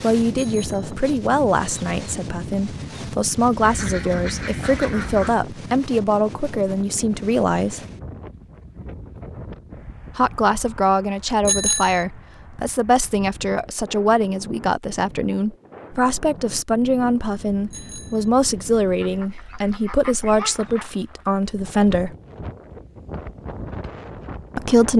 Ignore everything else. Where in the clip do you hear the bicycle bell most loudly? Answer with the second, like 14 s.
12 s.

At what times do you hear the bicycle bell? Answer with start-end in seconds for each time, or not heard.
0.3-0.9, 11.4-12.1, 17.7-18.3.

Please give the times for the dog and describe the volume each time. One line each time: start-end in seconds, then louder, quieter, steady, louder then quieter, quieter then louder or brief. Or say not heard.
not heard.